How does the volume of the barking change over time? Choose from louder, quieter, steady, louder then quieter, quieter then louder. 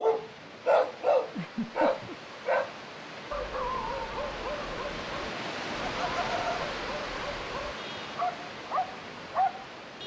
quieter then louder.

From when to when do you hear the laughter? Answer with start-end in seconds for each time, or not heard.
1.4-2.1, 6.0-6.7.